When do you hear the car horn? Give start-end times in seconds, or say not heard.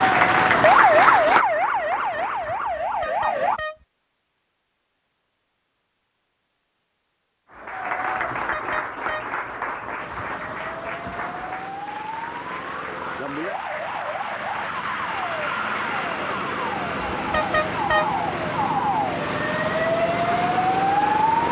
2.6-3.9, 8.3-9.3, 17.1-18.1.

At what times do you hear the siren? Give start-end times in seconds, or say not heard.
0.0-3.6, 9.9-21.4.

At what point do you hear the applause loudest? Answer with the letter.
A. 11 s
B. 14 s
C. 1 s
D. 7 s
C.